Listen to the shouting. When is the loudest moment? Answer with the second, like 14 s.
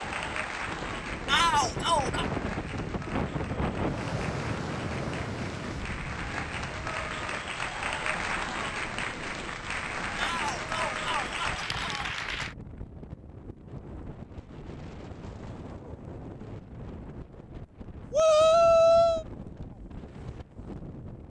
19 s.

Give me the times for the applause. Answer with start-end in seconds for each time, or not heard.
0.0-12.6.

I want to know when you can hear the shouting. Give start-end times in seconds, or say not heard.
1.2-2.2, 10.2-12.2, 18.1-19.2.